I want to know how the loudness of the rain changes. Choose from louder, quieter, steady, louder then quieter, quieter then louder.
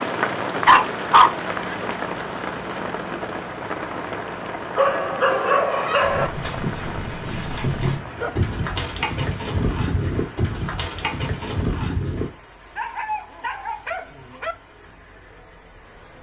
quieter.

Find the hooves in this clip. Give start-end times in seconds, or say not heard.
6.0-12.3.